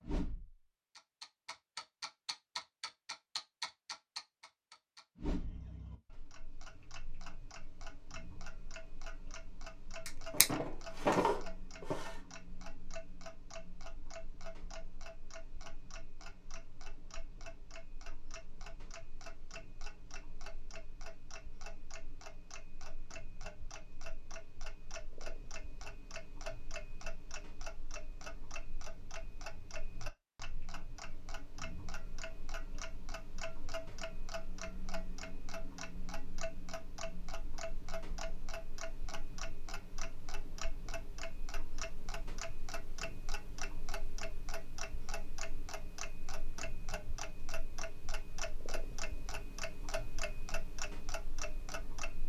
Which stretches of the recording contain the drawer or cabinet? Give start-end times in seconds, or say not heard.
10.1-12.1.